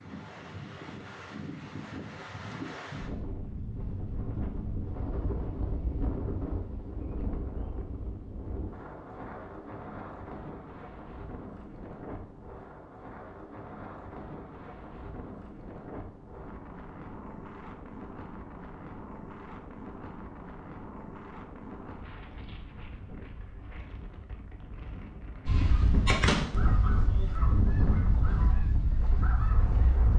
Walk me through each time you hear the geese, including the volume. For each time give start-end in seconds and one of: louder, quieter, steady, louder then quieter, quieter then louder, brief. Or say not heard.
25.4-30.1 quieter.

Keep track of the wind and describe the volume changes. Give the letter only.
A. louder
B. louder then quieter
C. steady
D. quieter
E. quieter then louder
D.